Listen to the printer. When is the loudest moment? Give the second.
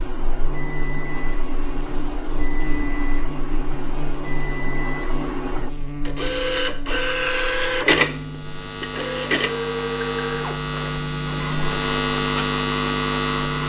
8 s.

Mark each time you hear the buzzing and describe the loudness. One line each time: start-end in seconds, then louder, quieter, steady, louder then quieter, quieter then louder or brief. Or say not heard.
0.0-13.6 louder.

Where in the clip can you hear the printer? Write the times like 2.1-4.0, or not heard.
0.0-13.6.